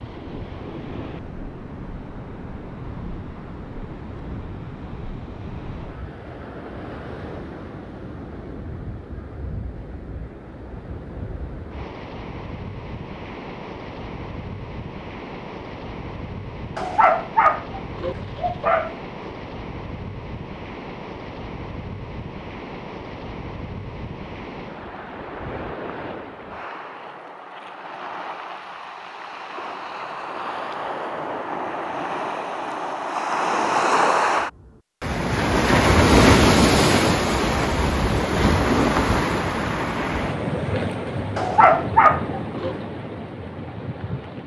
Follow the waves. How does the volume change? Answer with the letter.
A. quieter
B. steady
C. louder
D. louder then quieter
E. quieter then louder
C.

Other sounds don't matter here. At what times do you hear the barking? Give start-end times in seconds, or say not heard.
16.8-19.3, 41.4-42.8.